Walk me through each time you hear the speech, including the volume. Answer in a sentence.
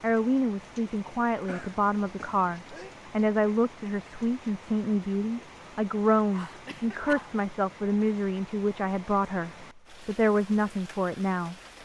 The speech can be heard from 0.0 to 11.6 s, at a steady volume.